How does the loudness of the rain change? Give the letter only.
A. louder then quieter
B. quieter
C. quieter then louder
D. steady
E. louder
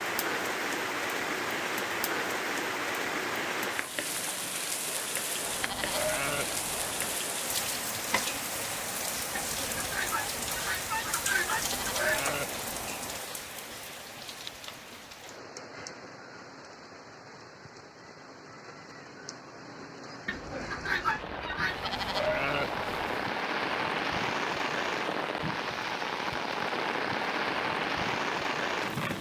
C.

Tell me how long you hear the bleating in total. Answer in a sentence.
The bleating can be heard for 5 seconds in total.